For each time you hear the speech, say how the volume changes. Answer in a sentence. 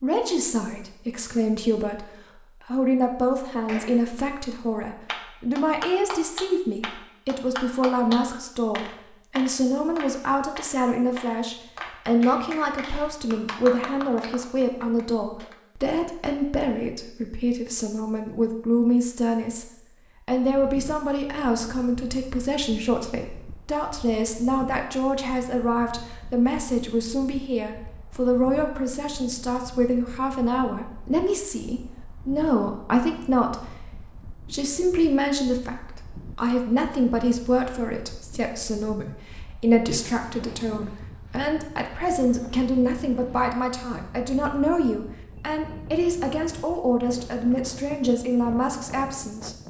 You can hear the speech from 0.0 to 49.5 s, at a steady volume.